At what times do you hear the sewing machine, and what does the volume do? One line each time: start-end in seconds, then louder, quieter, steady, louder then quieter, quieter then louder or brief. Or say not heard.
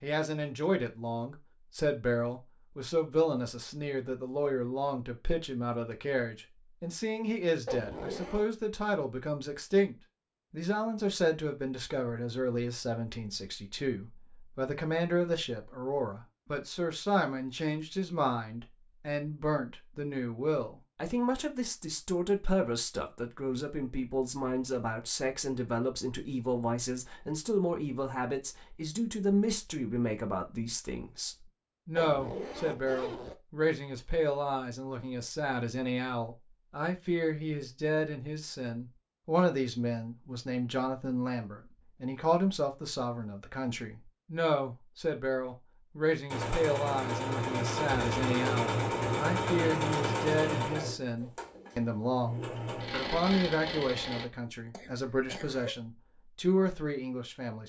46.2-54.2 quieter then louder.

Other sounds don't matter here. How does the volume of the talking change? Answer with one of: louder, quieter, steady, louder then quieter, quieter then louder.
steady.